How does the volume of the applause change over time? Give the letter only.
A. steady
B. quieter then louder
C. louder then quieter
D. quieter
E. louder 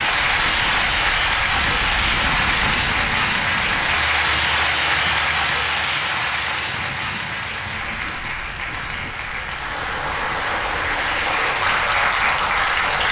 B.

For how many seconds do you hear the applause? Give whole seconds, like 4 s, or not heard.
13 s.